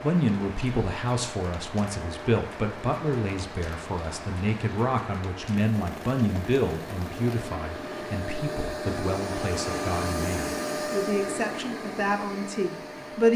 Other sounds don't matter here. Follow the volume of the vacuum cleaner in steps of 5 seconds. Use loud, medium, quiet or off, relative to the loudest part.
medium, loud, loud.